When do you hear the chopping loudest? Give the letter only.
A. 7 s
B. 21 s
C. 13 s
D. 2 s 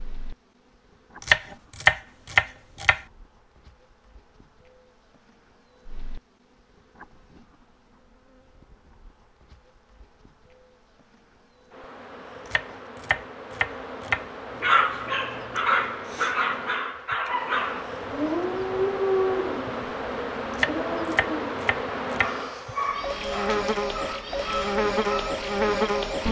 D.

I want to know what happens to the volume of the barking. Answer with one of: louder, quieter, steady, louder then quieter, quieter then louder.
quieter.